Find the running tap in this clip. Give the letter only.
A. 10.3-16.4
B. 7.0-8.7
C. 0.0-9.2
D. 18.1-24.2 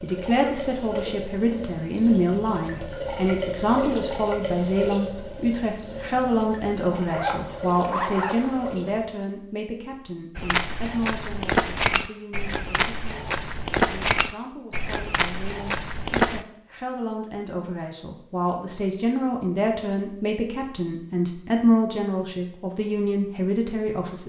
C.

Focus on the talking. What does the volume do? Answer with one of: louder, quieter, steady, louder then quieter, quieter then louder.
quieter then louder.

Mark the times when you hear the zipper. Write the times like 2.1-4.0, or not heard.
7.0-8.7.